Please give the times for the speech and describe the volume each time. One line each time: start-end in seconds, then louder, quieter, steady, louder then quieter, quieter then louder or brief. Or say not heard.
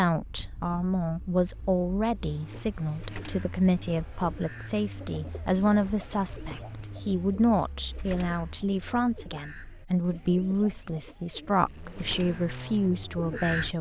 0.0-13.7 steady.